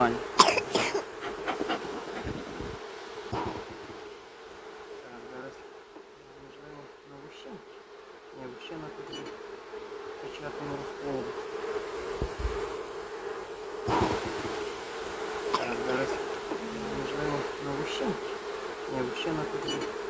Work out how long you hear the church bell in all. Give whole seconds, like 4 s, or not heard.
not heard.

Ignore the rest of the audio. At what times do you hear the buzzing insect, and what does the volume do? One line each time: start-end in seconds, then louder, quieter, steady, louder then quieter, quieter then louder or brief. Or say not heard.
0.0-20.0 quieter then louder.